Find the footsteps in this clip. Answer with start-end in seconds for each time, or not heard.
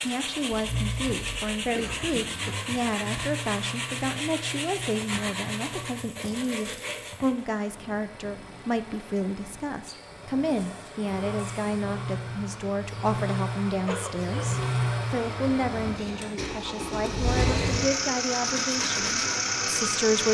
not heard.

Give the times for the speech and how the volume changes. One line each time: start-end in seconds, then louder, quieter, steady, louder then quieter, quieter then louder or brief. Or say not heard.
0.1-20.2 steady.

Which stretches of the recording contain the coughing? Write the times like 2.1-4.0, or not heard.
1.8-2.8, 13.7-14.5.